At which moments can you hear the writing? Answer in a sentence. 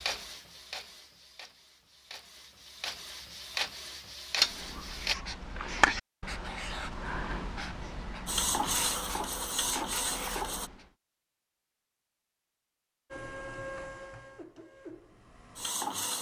You can hear the writing from 4.5 to 10.9 s.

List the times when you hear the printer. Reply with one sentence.
You can hear the printer from 0.0 to 5.2 s, from 8.2 to 10.7 s and from 13.1 to 16.1 s.